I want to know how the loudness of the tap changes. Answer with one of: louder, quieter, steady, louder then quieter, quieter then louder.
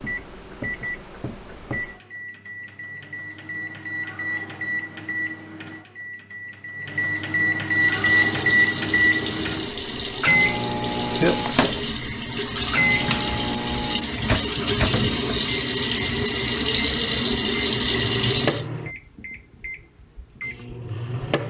louder.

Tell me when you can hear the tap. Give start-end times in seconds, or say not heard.
7.7-18.6.